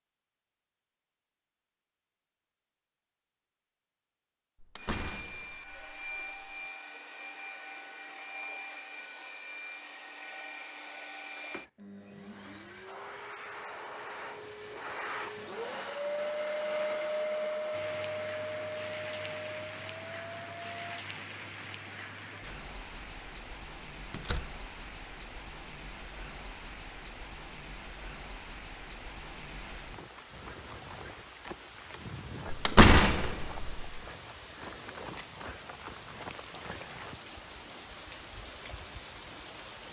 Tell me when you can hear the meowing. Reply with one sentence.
You can't hear the meowing here.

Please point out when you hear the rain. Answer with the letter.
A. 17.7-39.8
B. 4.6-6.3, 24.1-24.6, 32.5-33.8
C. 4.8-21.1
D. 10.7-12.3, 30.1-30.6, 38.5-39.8
A.